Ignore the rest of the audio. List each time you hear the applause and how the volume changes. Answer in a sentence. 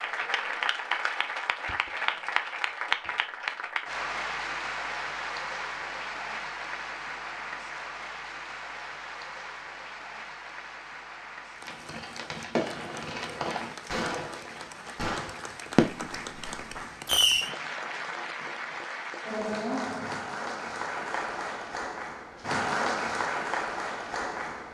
The applause can be heard from 0.0 to 24.6 s, getting quieter then louder.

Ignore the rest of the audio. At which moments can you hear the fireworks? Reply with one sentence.
The fireworks can be heard from 11.6 to 17.5 s.